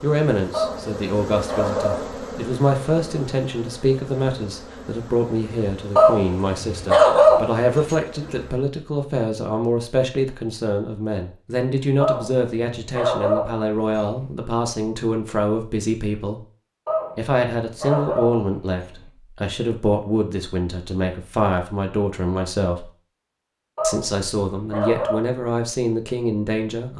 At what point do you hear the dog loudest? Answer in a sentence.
The loudest moment of the dog is at 7 seconds.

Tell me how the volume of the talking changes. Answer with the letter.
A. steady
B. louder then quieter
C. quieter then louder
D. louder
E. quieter
A.